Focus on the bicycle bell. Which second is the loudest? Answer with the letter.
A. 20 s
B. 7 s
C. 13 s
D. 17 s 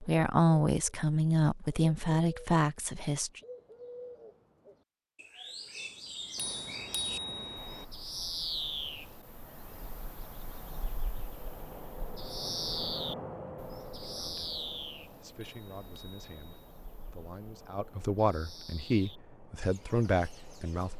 B.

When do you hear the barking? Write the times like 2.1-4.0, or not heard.
not heard.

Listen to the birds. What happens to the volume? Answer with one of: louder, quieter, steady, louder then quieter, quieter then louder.
louder then quieter.